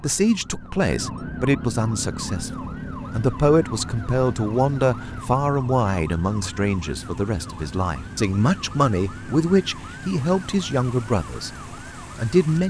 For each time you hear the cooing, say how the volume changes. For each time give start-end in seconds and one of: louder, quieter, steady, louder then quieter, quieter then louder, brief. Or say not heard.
not heard.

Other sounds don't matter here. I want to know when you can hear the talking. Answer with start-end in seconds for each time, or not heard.
0.0-11.5, 12.2-12.6.